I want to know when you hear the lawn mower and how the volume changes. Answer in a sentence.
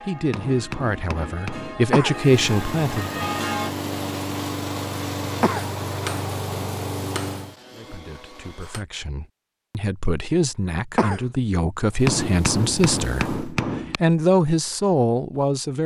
The lawn mower can be heard from 2.1 to 7.5 s, at a steady volume; and briefly from 11.8 to 13.6 s.